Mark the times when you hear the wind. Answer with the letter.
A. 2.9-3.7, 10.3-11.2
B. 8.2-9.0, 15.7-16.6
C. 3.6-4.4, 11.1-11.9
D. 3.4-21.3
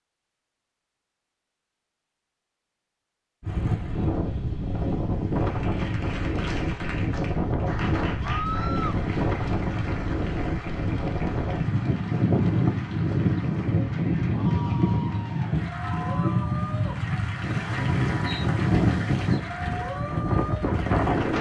D.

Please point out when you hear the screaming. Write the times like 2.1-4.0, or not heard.
8.2-9.0, 15.7-16.6.